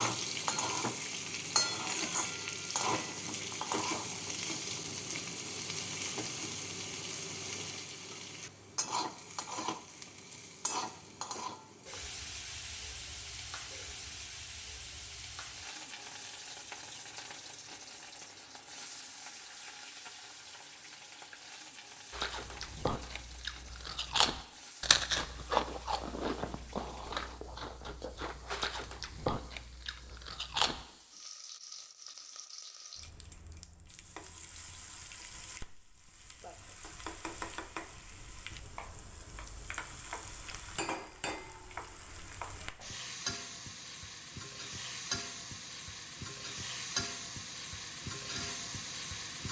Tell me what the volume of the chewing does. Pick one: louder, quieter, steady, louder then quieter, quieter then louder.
louder then quieter.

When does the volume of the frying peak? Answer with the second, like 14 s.
2 s.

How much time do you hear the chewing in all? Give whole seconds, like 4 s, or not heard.
9 s.